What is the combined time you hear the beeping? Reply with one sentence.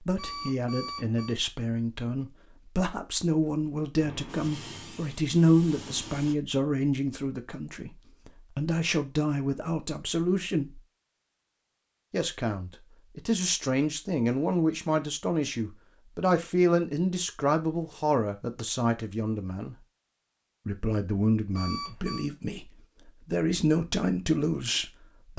You can hear the beeping for 2 seconds altogether.